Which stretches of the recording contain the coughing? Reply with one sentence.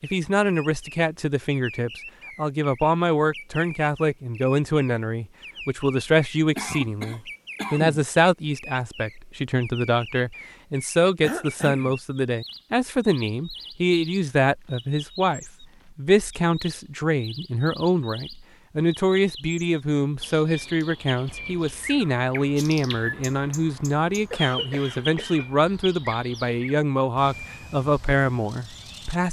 You can hear the coughing from 6.5 to 8.1 s, from 11.2 to 11.9 s and from 24.3 to 25.5 s.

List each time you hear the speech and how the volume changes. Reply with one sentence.
The speech can be heard from 0.0 to 29.2 s, at a steady volume.